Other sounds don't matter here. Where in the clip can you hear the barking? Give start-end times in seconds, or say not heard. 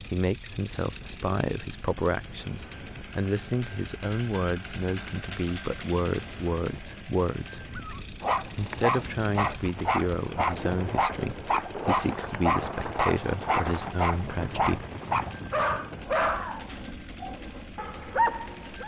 7.8-18.8.